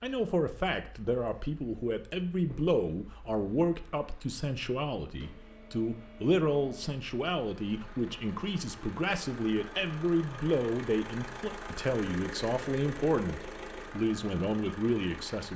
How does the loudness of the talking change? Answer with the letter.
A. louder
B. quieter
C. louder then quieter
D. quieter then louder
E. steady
E.